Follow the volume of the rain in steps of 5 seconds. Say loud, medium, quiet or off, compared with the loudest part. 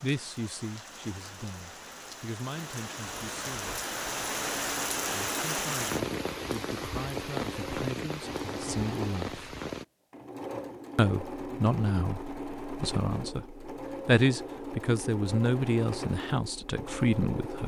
loud, loud, off, off.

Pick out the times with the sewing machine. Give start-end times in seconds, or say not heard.
4.5-17.6.